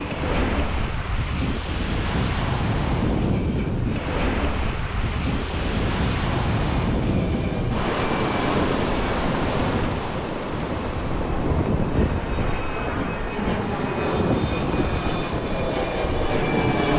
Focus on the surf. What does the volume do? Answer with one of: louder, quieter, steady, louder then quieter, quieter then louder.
quieter.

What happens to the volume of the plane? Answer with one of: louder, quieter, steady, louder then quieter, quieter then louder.
louder.